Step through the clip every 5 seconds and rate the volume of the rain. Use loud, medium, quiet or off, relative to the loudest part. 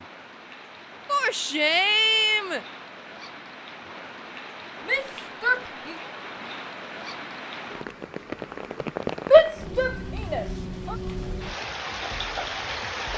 medium, loud, loud.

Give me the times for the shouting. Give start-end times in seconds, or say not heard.
1.1-2.6, 4.8-6.0, 9.3-10.9.